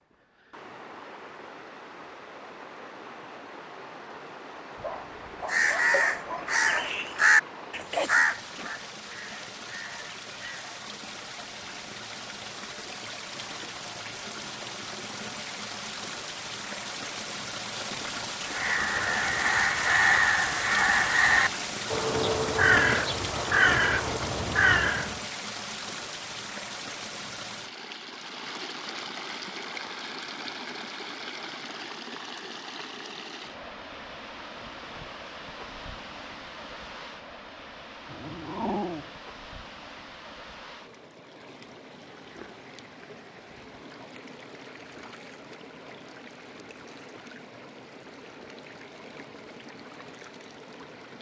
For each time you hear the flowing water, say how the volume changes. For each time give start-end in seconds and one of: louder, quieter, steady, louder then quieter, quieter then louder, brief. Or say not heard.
0.0-51.1 louder then quieter.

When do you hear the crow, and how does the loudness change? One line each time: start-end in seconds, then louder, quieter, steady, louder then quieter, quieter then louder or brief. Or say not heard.
5.5-10.7 quieter
18.5-25.2 steady.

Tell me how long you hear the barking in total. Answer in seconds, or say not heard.
3 s.